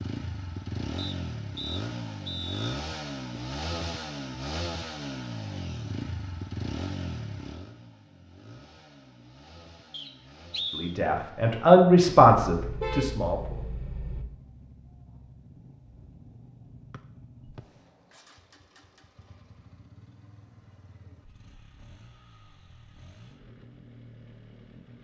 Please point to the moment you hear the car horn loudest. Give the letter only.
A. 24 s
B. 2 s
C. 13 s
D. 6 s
C.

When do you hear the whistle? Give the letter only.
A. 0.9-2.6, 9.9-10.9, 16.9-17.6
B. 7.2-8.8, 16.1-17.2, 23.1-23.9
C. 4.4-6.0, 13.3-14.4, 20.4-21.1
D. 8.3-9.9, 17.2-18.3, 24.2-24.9
A.